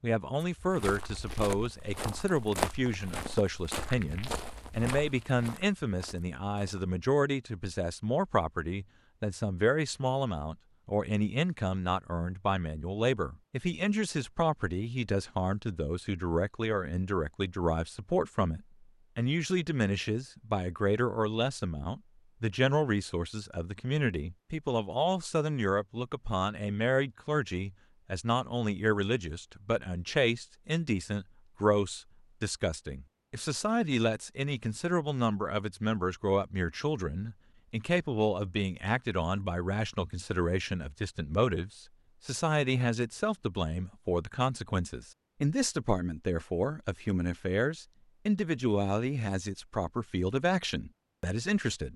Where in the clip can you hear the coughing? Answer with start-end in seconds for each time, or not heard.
not heard.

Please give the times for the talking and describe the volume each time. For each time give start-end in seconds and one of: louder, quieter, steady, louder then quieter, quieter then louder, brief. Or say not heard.
0.0-51.9 steady.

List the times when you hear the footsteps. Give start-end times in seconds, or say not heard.
0.4-6.9.